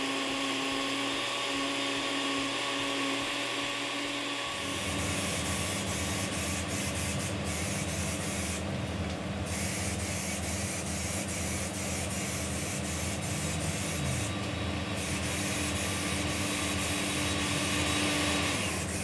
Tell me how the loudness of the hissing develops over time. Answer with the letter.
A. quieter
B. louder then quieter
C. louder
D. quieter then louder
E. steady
E.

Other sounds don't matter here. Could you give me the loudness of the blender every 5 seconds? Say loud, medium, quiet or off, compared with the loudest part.
loud, medium, medium, loud.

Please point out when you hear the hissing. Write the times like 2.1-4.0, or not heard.
4.5-18.9.